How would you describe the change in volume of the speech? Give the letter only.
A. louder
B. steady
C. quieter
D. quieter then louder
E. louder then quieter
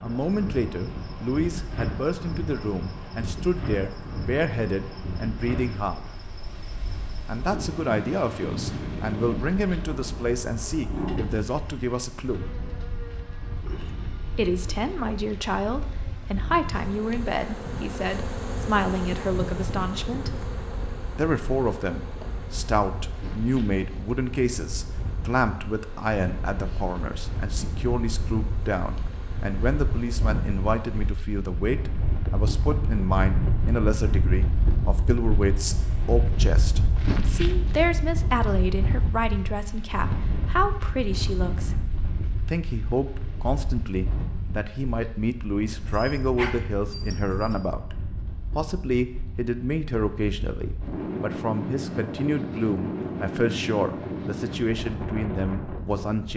B.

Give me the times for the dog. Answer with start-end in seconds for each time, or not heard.
9.8-11.4, 45.7-47.5.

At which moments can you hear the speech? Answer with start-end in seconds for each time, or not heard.
0.0-6.1, 7.2-12.5, 14.3-20.3, 21.1-41.9, 42.5-56.3.